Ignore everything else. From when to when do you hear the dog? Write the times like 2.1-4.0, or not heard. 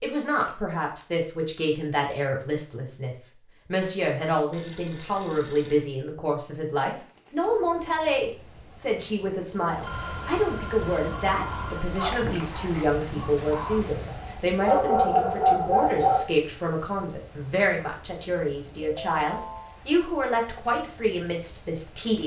10.9-16.2.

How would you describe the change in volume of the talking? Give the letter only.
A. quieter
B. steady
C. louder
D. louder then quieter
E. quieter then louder
B.